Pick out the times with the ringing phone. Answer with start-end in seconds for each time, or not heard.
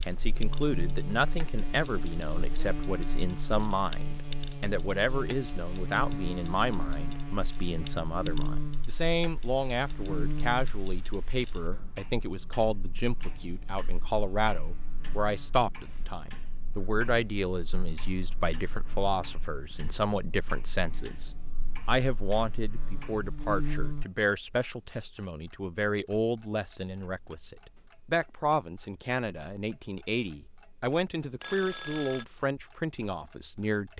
31.4-32.2.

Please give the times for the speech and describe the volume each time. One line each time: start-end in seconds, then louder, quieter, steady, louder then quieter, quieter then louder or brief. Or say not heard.
0.1-33.9 steady.